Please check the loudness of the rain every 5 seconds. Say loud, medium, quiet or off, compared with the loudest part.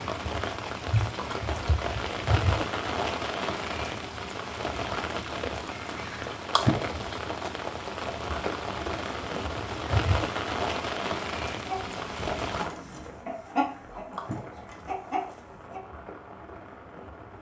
loud, loud, loud, quiet.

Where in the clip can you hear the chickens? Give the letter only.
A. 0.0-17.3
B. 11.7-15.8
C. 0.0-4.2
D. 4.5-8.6
B.